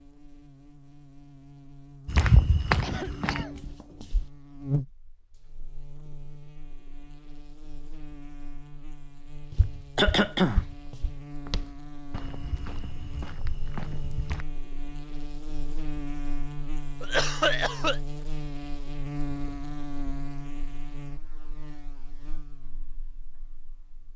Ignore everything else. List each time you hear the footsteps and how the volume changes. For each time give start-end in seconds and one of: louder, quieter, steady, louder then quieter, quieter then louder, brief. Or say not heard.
2.0-4.3 brief
9.3-14.4 quieter then louder.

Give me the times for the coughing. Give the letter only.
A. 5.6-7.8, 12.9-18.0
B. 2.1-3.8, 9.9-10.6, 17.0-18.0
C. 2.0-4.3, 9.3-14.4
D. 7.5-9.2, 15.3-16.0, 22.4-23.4
B.